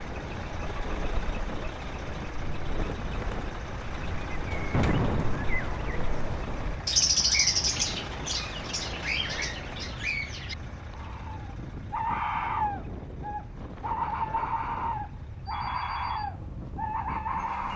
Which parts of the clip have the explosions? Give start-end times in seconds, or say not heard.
4.7-5.5.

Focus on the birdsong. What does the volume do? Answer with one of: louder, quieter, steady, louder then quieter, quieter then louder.
louder.